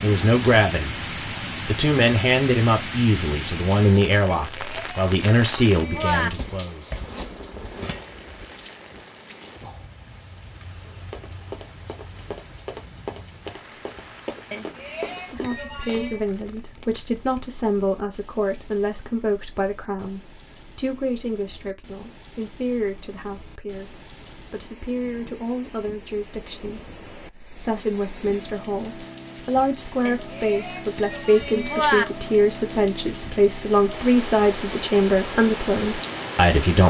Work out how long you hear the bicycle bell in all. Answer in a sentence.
The bicycle bell can be heard for 6 seconds in total.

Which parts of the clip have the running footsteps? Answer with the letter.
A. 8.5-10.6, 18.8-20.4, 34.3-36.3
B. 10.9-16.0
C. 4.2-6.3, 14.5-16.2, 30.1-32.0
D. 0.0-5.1
B.